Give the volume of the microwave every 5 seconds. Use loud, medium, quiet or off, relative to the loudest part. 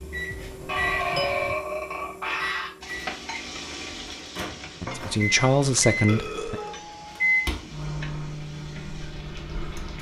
medium, loud.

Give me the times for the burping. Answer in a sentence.
You can hear the burping from 0.7 to 2.7 s and from 6.0 to 6.9 s.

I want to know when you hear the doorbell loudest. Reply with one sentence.
The loudest moment of the doorbell is at 1 second.